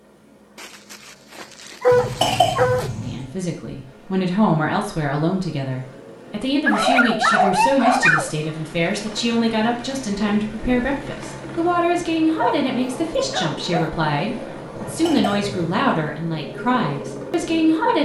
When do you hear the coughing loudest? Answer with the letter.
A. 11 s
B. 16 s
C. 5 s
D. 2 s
D.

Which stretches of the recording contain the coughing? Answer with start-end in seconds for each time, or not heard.
1.9-3.3, 14.8-15.6.